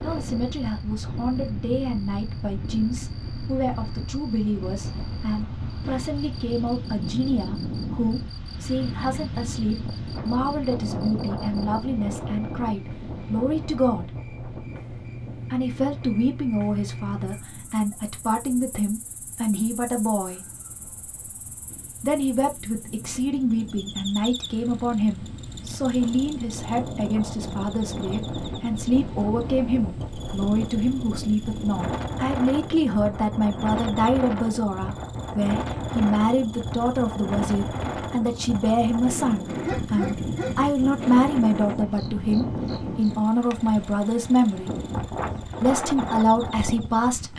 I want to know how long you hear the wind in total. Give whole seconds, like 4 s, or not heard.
47 s.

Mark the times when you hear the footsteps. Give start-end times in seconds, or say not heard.
not heard.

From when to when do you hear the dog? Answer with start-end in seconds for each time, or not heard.
39.5-40.7.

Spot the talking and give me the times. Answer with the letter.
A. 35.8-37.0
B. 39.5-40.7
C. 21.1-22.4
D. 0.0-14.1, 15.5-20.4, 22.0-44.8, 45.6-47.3
D.